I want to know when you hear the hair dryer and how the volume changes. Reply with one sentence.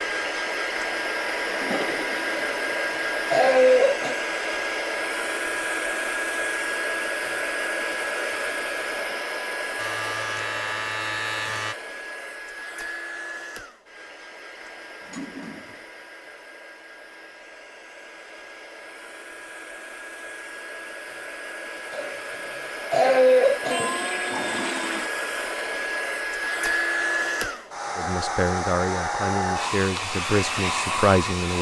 You can hear the hair dryer from 0.0 to 31.5 s, getting quieter then louder.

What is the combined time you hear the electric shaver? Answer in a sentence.
You can hear the electric shaver for 2 seconds altogether.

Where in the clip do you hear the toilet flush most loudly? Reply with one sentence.
The volume of the toilet flush peaks at 24 seconds.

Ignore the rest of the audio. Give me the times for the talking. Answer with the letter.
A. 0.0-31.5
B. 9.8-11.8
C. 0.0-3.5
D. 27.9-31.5
D.